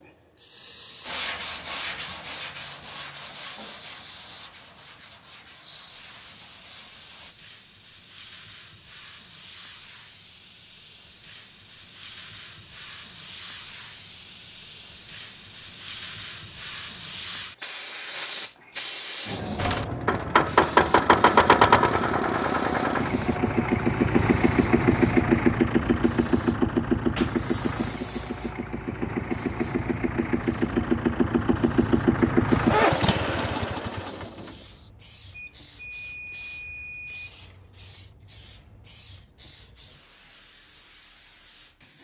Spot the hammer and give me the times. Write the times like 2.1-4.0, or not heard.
not heard.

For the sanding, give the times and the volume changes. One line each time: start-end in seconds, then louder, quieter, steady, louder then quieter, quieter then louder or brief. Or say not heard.
1.1-7.3 quieter.